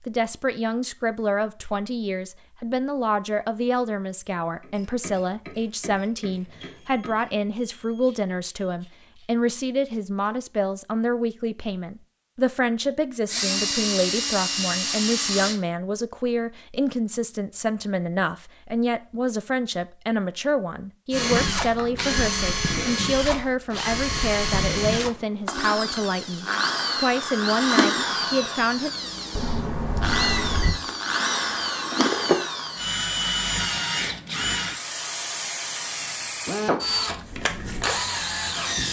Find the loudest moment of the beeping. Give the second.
30 s.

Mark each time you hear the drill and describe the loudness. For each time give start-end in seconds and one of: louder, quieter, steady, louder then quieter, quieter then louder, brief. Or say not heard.
13.2-15.6 brief
21.1-38.8 steady.